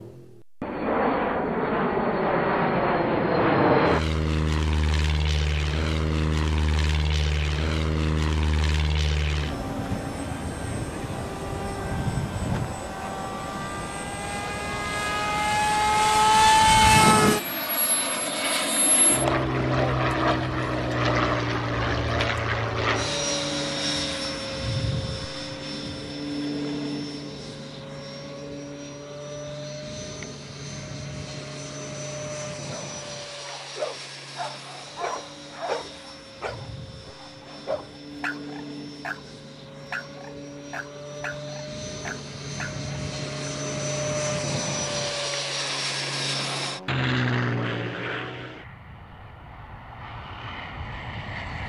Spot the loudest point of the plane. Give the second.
17 s.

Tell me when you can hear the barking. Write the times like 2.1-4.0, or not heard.
32.7-43.5.